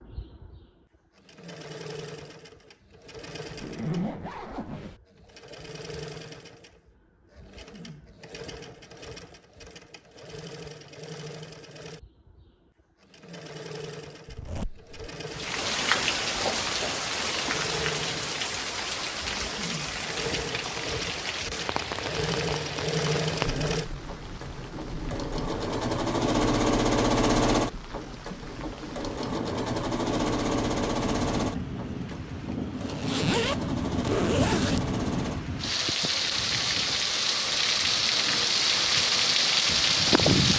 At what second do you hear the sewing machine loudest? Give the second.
27 s.